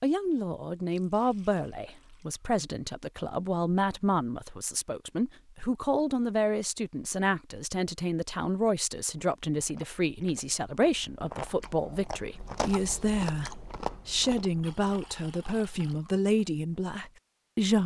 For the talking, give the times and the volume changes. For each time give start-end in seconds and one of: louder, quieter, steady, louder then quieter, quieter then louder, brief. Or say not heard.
0.0-17.8 steady.